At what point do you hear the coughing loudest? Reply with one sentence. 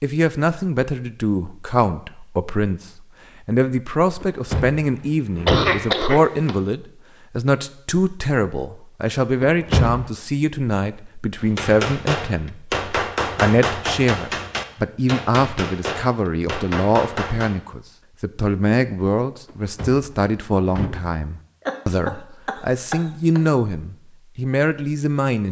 The loudest moment of the coughing is at 6 seconds.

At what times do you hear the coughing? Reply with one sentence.
The coughing can be heard from 5.5 to 6.5 s and from 21.6 to 23.4 s.